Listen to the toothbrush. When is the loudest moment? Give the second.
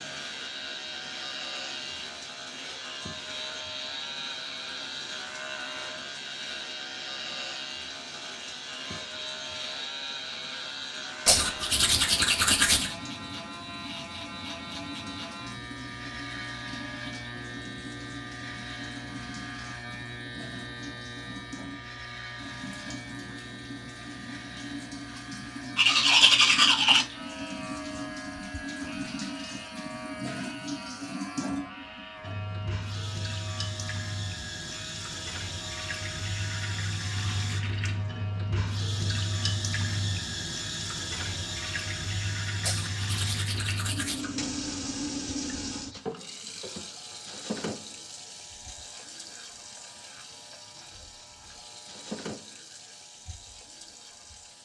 26 s.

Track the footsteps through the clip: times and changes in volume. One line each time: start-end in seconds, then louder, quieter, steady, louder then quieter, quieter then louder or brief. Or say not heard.
not heard.